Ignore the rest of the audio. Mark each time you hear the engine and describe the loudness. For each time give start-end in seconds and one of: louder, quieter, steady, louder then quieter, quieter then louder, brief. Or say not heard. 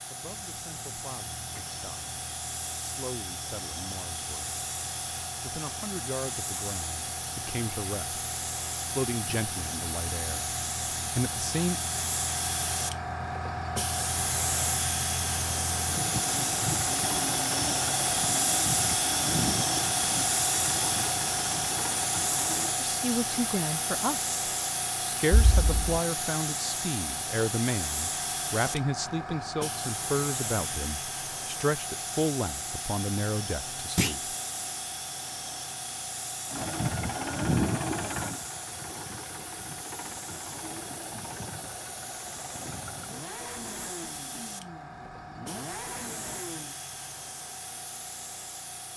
0.2-22.8 louder
36.5-46.8 quieter.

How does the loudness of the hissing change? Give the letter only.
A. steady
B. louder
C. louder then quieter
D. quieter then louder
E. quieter
C.